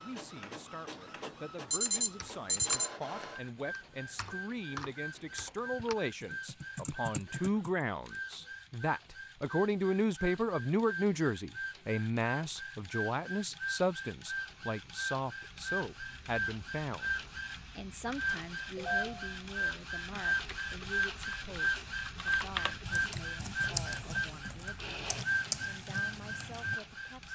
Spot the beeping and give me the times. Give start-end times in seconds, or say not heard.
1.7-2.9.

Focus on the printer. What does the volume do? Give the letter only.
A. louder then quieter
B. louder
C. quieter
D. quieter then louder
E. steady
B.